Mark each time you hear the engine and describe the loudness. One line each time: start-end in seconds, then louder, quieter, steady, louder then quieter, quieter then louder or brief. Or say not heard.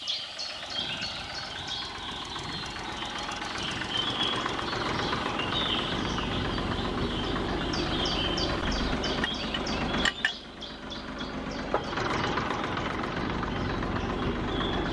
0.0-14.8 louder.